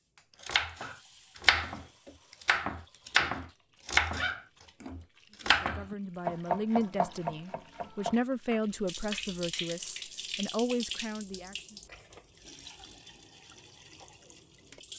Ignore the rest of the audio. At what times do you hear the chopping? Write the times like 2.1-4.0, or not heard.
0.5-8.6.